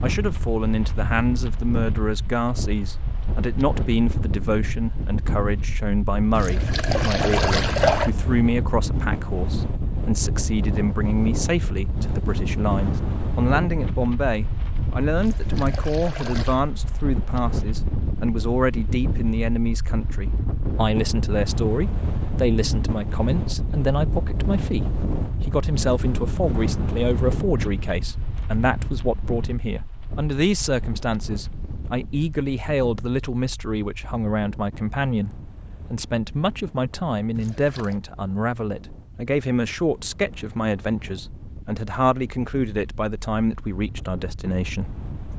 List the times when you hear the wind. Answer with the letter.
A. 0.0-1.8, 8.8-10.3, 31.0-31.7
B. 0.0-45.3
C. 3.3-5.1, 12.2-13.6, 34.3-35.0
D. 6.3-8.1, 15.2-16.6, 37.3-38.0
B.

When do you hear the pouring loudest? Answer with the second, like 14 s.
8 s.